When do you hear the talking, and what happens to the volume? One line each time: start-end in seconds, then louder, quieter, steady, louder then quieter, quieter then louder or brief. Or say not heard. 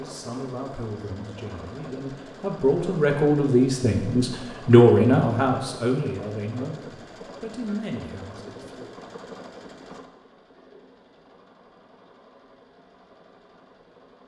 0.0-8.9 louder then quieter.